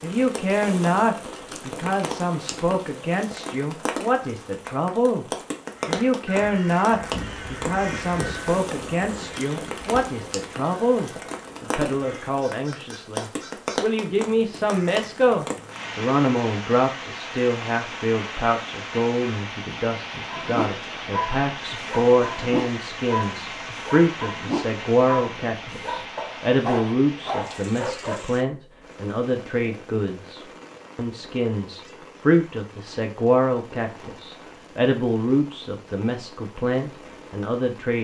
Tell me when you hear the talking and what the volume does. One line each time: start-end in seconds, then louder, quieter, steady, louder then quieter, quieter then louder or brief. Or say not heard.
0.0-37.9 steady.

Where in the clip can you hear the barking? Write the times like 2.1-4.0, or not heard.
20.3-28.2.